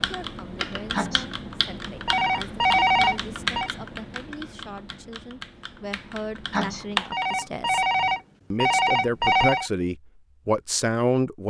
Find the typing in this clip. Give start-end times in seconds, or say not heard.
0.0-7.2.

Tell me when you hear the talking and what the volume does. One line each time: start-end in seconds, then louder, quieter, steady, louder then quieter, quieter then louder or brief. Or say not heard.
0.1-7.8 louder
8.5-11.4 brief.